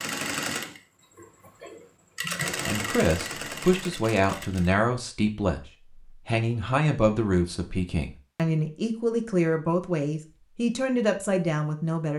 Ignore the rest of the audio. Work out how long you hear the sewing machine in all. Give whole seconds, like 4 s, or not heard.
5 s.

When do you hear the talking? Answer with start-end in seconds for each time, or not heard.
2.6-12.1.